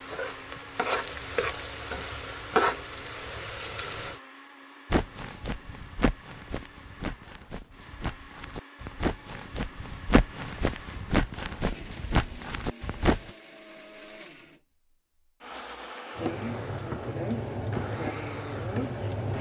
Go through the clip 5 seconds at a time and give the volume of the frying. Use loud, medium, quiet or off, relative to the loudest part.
loud, off, off, loud.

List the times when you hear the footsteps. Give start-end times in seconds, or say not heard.
4.9-13.3.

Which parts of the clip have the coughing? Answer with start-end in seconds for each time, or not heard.
not heard.